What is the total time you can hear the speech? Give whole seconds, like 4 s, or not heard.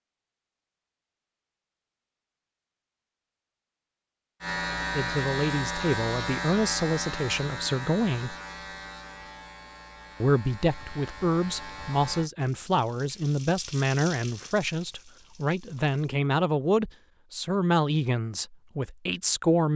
13 s.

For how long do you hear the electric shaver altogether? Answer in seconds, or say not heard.
8 s.